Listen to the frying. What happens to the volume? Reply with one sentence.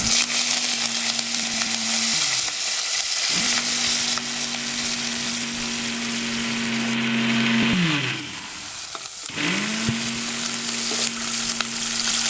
The loudness of the frying goes down, then up.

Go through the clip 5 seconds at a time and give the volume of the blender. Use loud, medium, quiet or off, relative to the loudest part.
medium, loud, medium.